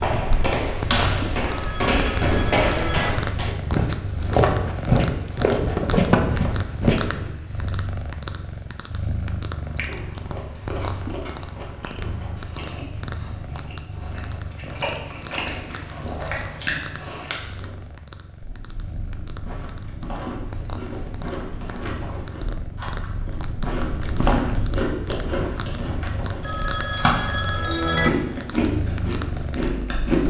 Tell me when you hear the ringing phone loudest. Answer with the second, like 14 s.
28 s.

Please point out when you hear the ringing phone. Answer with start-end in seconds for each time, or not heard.
1.4-3.1, 26.4-28.1.